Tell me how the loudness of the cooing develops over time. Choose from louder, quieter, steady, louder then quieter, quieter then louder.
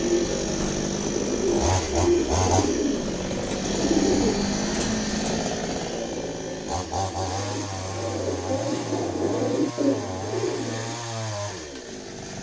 quieter then louder.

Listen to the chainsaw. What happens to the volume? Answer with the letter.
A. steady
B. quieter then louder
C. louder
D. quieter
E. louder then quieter
D.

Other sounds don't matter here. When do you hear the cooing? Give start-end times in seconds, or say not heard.
0.0-11.0.